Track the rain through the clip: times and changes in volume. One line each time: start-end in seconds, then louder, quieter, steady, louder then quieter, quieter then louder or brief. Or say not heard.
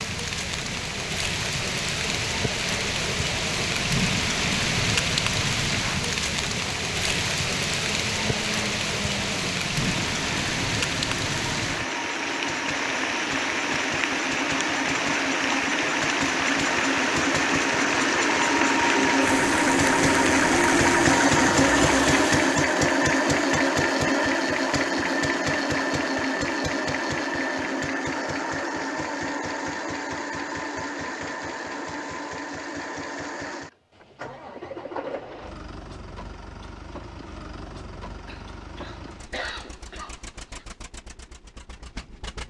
0.0-22.5 steady.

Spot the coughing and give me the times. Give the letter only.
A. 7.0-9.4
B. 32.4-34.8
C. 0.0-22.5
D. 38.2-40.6
D.